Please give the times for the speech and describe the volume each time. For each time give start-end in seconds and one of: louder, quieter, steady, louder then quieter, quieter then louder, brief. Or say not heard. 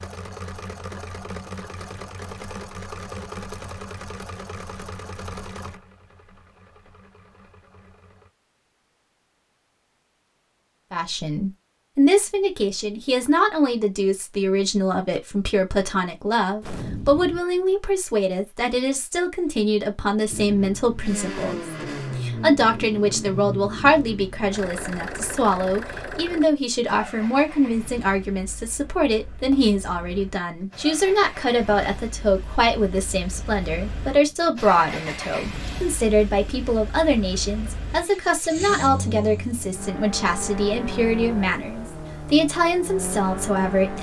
10.9-43.9 steady.